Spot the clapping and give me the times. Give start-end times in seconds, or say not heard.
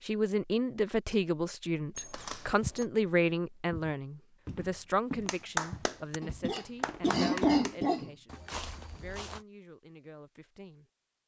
5.2-7.8.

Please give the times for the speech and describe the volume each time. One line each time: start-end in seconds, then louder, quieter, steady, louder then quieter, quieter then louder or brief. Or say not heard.
0.1-10.8 quieter.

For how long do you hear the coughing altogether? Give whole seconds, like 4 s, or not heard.
2 s.